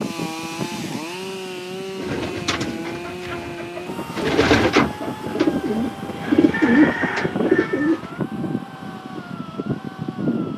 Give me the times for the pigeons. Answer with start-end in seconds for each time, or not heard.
1.9-8.2.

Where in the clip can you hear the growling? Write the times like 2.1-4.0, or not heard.
not heard.